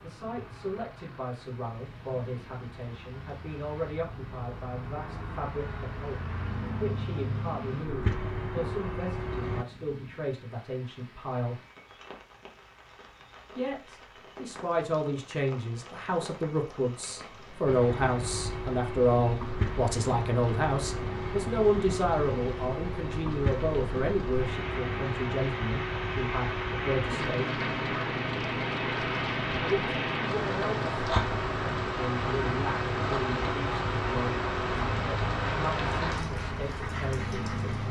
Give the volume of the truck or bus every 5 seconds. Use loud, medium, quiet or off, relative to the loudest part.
quiet, loud, off, loud, loud, loud, loud, loud.